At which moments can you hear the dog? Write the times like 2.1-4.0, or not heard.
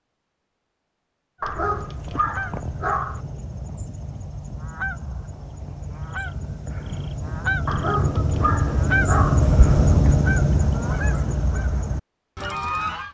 1.4-3.2, 7.7-9.4.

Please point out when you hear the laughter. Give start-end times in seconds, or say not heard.
not heard.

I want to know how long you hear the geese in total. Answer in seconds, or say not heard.
12 s.